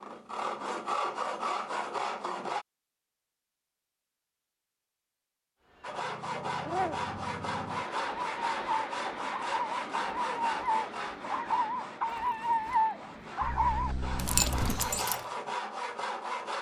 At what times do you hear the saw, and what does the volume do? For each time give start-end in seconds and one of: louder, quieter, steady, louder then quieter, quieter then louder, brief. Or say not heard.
0.0-2.6 brief
5.8-16.5 quieter then louder.